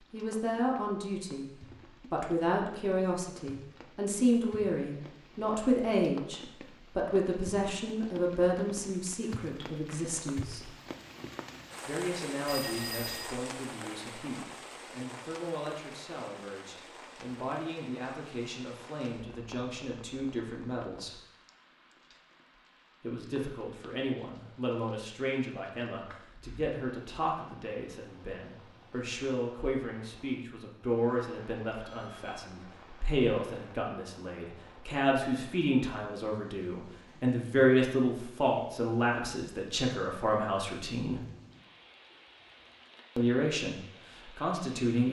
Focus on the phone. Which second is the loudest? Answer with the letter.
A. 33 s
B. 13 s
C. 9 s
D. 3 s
B.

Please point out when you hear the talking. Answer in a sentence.
You can hear the talking from 0.1 to 10.8 s, from 11.8 to 21.2 s, from 23.0 to 41.2 s and from 43.1 to 45.0 s.